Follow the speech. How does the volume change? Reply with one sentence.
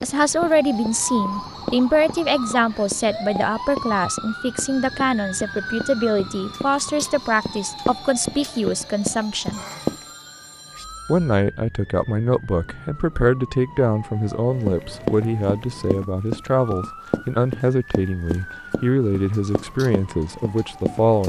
The volume of the speech stays about the same.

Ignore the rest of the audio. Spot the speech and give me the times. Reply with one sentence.
You can hear the speech from 0.0 to 9.6 s and from 11.1 to 21.2 s.